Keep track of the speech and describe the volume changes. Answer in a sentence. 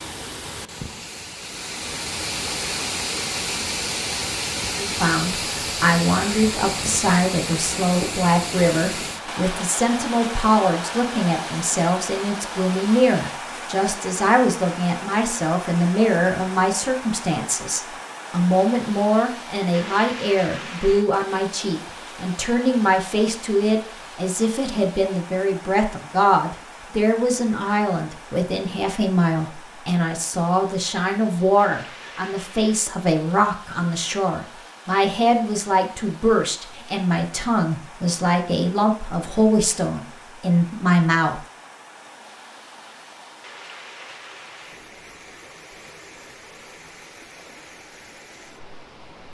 The volume of the speech stays about the same.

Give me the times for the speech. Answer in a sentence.
You can hear the speech from 4.8 to 41.4 s.